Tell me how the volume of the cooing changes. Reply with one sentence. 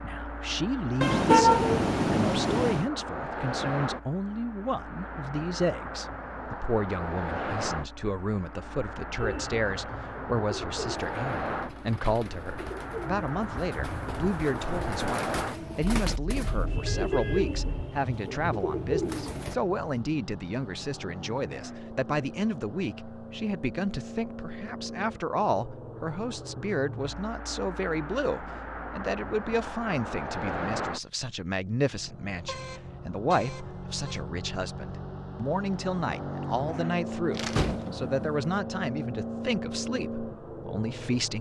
The volume of the cooing goes up.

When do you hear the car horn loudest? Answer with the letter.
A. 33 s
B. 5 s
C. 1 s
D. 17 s
C.